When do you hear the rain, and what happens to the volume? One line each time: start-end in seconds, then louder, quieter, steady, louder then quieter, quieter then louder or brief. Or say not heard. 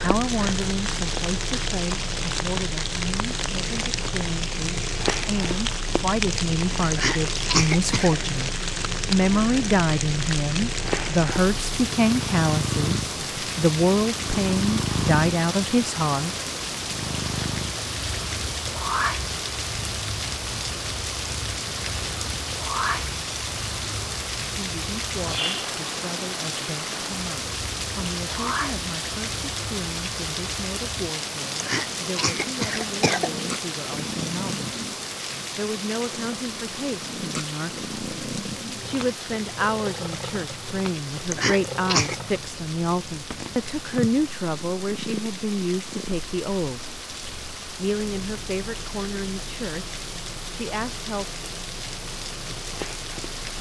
0.0-53.5 quieter.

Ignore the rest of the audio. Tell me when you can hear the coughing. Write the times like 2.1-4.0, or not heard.
6.9-8.2, 31.6-33.3, 41.3-42.1.